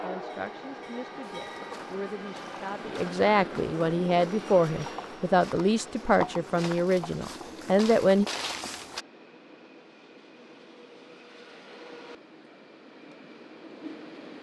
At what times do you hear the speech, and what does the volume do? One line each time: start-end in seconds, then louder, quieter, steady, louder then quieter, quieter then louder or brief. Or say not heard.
0.0-8.2 louder.